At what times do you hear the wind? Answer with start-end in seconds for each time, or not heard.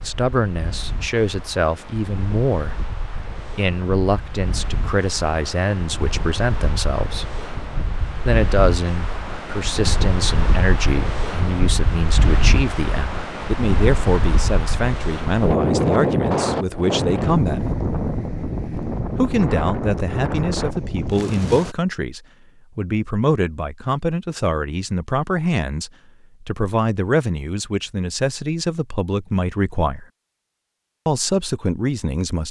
0.0-21.8.